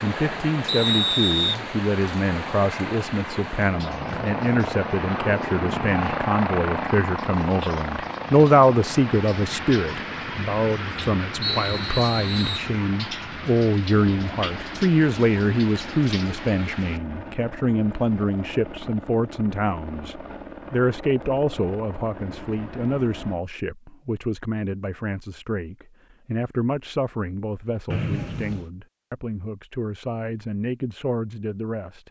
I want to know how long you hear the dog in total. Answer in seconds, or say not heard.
not heard.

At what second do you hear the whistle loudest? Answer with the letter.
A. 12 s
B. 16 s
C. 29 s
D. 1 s
D.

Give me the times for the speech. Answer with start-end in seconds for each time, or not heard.
0.0-32.0.